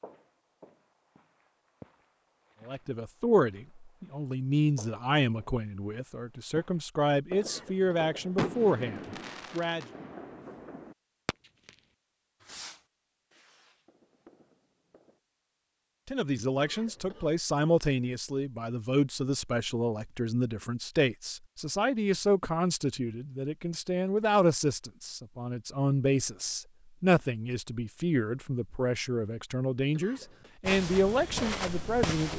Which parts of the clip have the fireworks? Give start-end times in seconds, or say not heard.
7.3-11.8, 12.4-15.2.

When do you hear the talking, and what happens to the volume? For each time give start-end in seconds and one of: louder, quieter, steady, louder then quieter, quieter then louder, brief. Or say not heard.
2.6-9.8 quieter then louder
16.1-32.3 steady.